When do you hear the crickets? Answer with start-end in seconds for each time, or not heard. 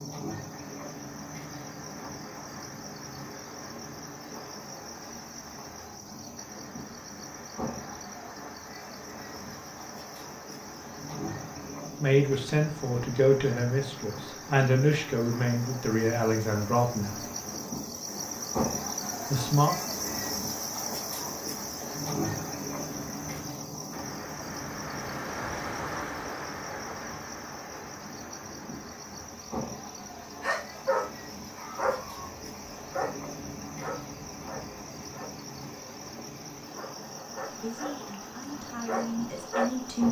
0.0-40.0.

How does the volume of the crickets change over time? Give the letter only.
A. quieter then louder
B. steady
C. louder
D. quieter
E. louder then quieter
E.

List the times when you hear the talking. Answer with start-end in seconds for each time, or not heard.
11.8-17.2, 19.2-19.8, 37.5-40.0.